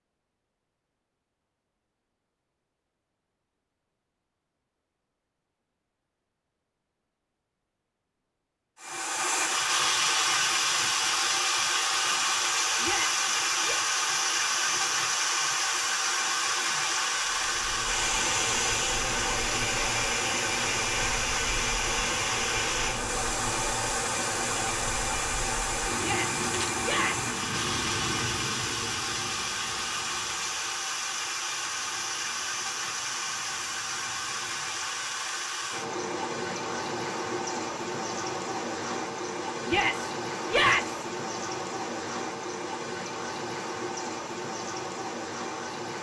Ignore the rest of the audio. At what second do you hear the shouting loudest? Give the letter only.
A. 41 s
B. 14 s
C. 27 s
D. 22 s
A.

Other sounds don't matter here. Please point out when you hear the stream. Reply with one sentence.
The stream can be heard from 8.8 to 45.9 s.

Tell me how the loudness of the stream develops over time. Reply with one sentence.
The volume of the stream goes down.